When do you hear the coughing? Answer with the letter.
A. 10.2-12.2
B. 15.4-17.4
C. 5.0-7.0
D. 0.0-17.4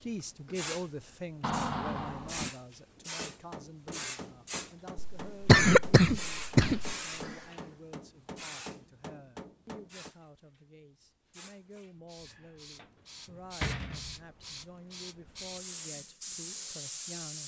C.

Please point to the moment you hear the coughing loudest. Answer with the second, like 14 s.
6 s.